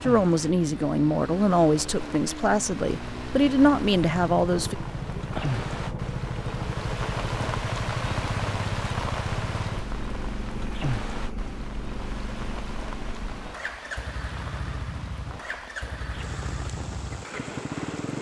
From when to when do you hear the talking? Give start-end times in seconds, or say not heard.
0.0-4.8.